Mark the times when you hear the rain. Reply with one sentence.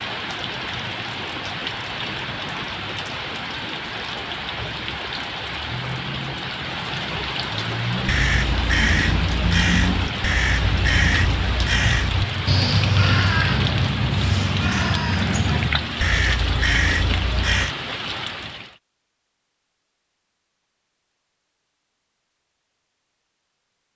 You can hear the rain from 0.0 to 18.8 s.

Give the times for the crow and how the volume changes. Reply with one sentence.
The crow can be heard from 7.7 to 17.8 s, at a steady volume.